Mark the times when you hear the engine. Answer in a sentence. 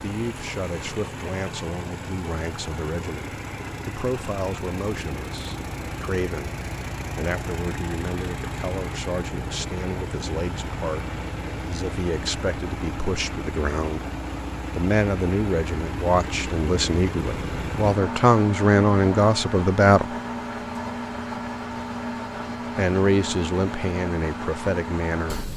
You can hear the engine from 0.0 to 25.5 s.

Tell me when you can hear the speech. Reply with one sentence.
You can hear the speech from 0.0 to 14.1 s, from 14.8 to 20.1 s and from 22.8 to 25.4 s.